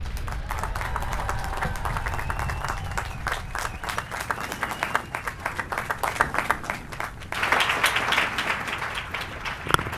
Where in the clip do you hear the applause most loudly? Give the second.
8 s.